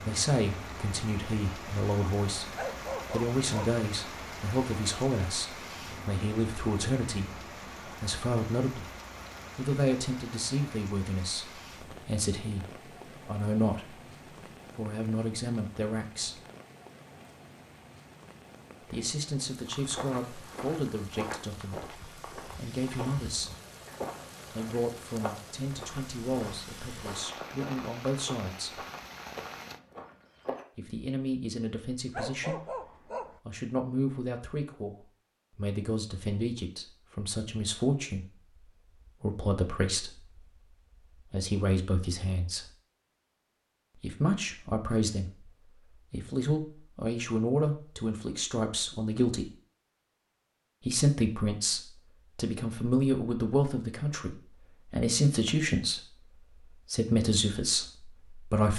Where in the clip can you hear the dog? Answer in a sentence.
You can hear the dog from 2.5 to 3.8 s and from 32.1 to 33.4 s.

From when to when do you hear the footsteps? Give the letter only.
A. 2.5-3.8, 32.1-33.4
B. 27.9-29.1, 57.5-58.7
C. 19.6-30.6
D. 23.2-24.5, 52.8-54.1
C.